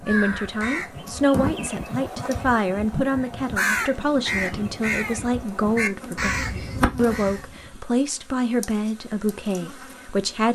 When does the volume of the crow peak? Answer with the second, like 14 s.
4 s.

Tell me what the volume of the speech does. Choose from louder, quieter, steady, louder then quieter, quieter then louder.
steady.